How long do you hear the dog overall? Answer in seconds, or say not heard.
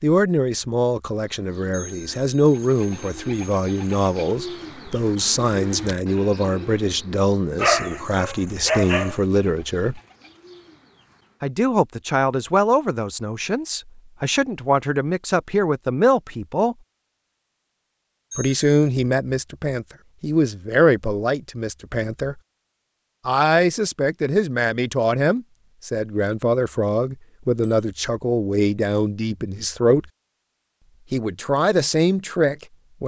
2 s.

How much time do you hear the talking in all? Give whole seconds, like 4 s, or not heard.
28 s.